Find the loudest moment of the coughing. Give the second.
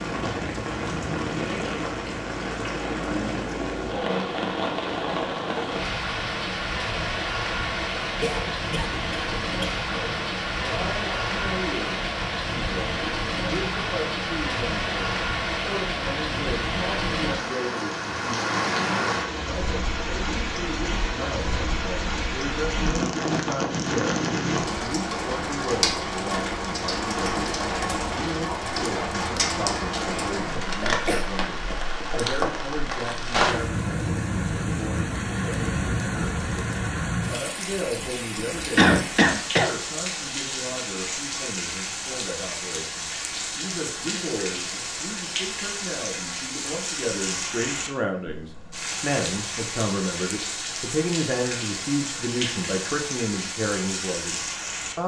39 s.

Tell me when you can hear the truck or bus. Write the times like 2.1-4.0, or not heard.
not heard.